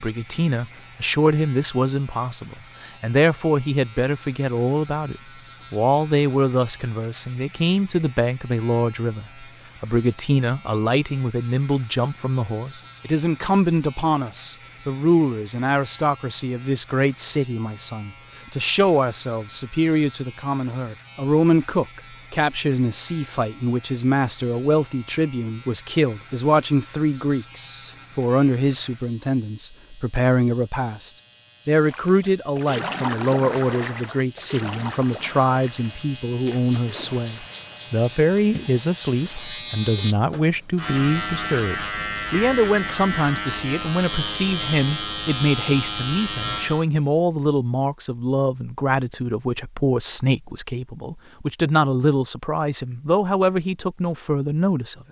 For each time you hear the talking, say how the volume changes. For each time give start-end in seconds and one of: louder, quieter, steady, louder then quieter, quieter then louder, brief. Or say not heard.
0.0-55.0 steady.